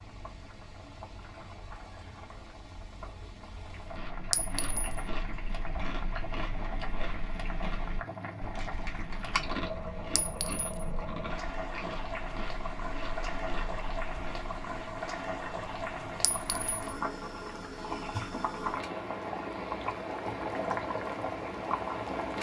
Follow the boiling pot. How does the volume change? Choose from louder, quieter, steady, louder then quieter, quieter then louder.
louder.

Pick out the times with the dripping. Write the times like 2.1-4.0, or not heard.
not heard.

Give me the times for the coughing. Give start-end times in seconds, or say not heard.
not heard.